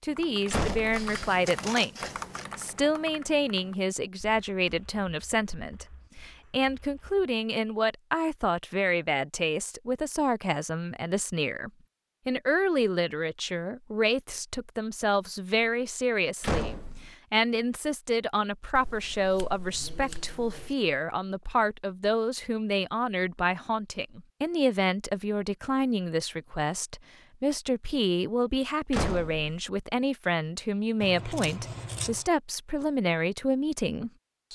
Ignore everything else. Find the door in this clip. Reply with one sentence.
The door can be heard from 0.5 to 1.1 s, from 16.4 to 17.1 s and from 28.9 to 29.6 s.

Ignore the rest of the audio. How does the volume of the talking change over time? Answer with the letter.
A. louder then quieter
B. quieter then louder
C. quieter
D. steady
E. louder
D.